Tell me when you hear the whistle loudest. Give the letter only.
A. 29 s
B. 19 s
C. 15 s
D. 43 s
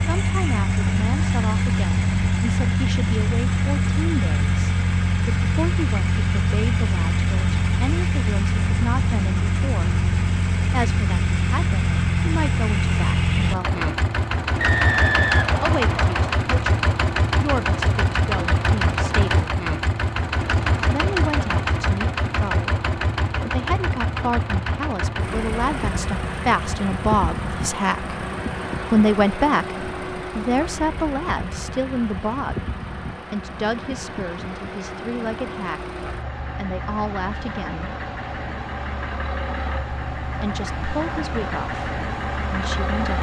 C.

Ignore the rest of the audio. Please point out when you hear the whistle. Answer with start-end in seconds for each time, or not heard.
14.6-16.4.